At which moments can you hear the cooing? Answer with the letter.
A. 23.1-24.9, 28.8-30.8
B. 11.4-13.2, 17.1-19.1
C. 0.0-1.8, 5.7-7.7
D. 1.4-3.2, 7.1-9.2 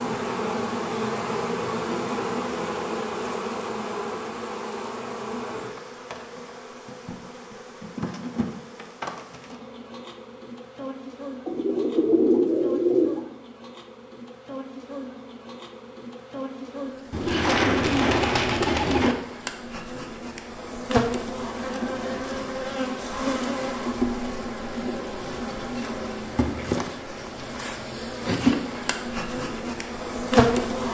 B.